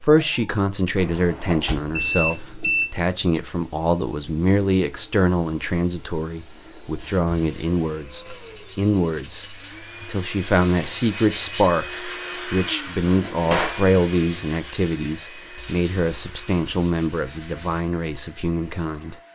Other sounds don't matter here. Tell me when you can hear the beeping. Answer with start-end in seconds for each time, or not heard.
1.9-2.9.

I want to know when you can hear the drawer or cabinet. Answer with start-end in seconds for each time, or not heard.
0.9-2.4, 13.0-13.8.